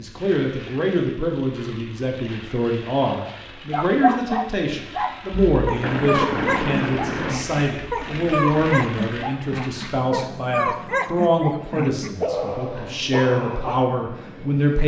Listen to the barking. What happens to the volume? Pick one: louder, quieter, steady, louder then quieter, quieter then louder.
steady.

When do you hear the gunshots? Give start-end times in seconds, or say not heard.
5.3-7.3.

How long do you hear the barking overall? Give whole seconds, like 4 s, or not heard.
10 s.